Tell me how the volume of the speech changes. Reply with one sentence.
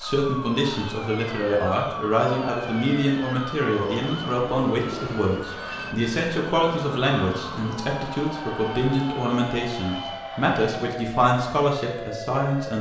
The loudness of the speech stays about the same.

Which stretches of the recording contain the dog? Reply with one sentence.
You can't hear the dog here.